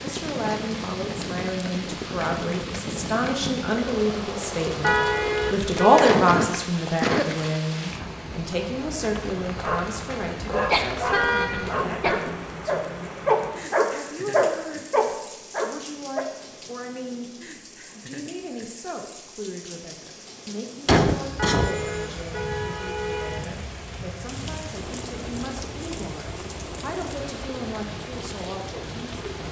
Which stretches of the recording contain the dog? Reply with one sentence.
The dog can be heard from 9.2 to 16.2 s.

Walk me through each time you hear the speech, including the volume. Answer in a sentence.
The speech can be heard from 0.0 to 29.4 s, getting quieter.